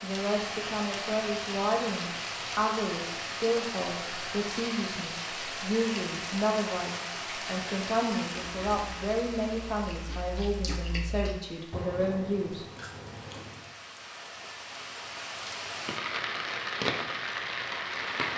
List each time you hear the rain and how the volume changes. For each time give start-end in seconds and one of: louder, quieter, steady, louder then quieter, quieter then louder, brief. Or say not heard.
0.0-18.3 quieter then louder.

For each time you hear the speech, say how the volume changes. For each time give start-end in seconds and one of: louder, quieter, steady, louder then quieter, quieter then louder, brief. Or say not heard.
0.0-12.7 steady.